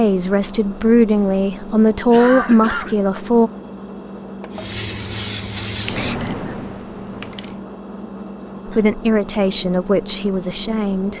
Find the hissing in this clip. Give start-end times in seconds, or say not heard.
4.5-7.7.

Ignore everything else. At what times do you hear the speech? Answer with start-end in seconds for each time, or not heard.
0.0-3.5, 8.7-11.1.